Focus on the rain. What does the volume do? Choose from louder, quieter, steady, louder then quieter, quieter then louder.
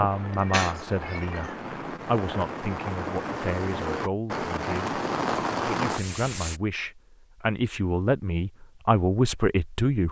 louder.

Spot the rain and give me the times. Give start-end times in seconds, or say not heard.
0.0-6.6.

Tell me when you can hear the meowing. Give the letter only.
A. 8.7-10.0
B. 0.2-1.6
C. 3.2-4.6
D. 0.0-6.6
B.